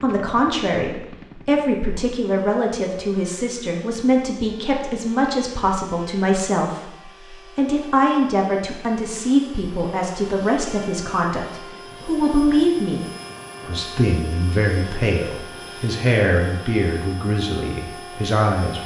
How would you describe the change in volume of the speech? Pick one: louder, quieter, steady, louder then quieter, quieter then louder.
steady.